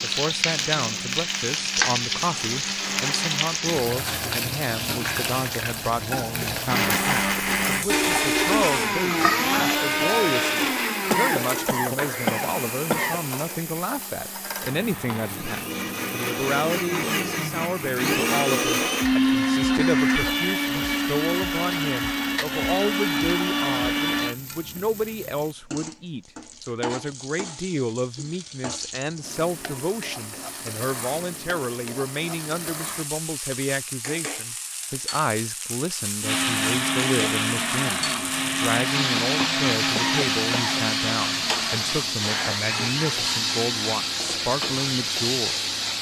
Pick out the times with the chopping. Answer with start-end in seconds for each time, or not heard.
not heard.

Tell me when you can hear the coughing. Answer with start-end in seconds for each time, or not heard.
11.1-13.2, 40.0-40.9.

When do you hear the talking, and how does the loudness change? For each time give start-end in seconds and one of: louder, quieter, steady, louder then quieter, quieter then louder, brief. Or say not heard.
0.0-45.7 steady.